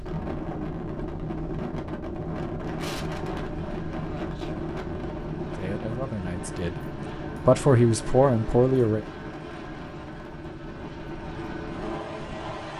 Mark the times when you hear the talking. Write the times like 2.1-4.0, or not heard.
5.5-9.0.